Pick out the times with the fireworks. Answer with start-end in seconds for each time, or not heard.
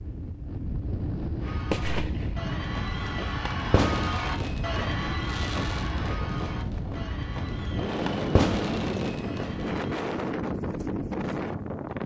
1.6-9.7.